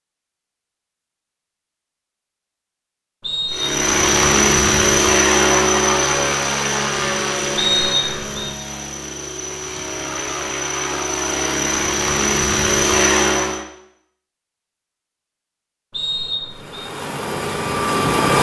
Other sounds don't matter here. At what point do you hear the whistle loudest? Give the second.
8 s.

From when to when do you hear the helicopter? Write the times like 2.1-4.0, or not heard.
3.5-13.7, 16.4-18.3.